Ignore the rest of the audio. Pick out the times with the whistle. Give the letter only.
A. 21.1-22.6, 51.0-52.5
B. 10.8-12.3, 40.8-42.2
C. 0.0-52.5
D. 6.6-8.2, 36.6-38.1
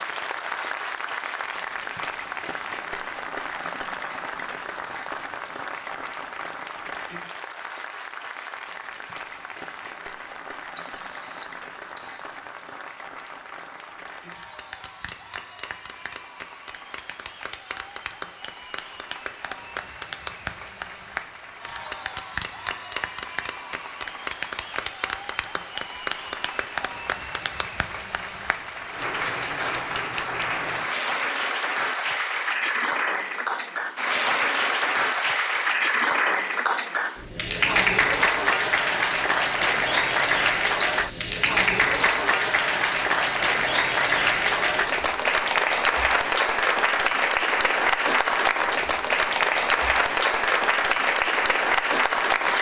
B.